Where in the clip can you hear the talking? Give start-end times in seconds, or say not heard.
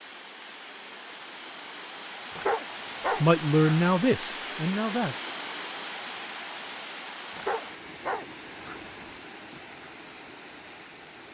3.2-5.2.